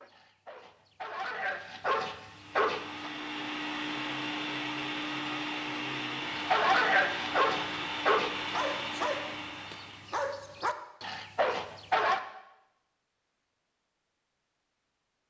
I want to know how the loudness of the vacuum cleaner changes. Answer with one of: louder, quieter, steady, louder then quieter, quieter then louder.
steady.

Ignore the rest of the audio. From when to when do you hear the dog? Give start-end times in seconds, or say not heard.
0.0-3.1, 6.3-12.2.